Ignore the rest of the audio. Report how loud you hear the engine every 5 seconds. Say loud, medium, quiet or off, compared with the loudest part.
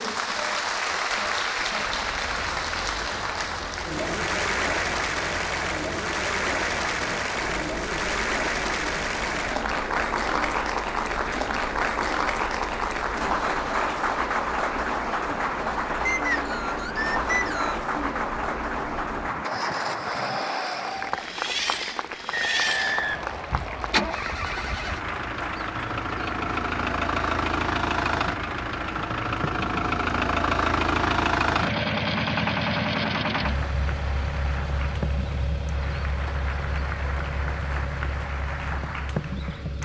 quiet, quiet, quiet, medium, medium, loud, loud, medium.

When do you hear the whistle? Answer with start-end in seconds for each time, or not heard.
16.1-17.9, 22.3-24.1.